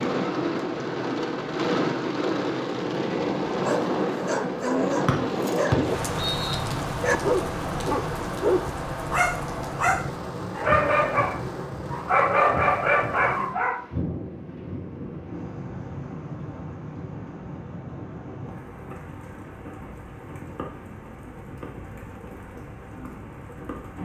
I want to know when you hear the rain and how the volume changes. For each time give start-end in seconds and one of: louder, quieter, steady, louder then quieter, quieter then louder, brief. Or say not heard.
0.0-24.0 quieter.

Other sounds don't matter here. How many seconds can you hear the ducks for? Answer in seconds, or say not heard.
not heard.